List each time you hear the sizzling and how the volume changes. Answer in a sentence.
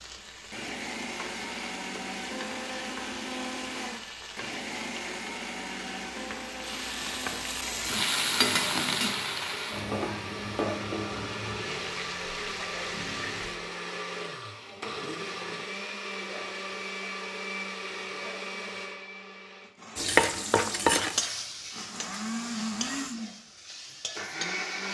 The sizzling can be heard from 0.0 to 13.6 s, getting louder then quieter; and from 19.9 to 24.8 s, getting quieter.